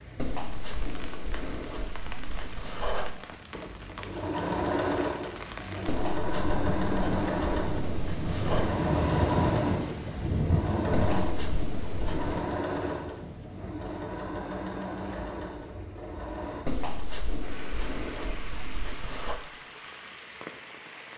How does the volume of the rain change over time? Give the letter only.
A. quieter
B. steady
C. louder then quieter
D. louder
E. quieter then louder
C.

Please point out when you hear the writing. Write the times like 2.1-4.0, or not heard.
0.1-3.2, 5.8-8.7, 10.9-12.4, 16.6-19.4.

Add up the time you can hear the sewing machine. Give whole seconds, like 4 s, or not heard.
13 s.